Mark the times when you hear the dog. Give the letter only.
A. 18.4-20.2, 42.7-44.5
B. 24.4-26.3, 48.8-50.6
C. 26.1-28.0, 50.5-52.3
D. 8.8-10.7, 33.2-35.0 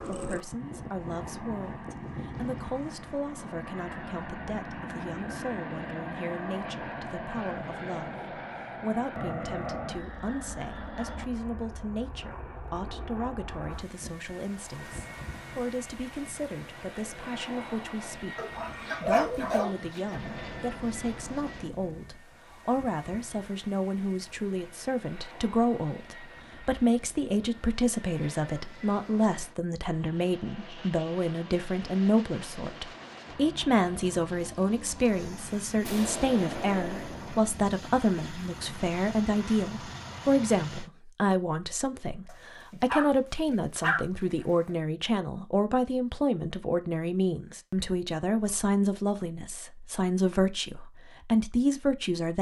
A.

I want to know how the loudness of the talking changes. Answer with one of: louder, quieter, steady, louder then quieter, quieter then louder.
louder.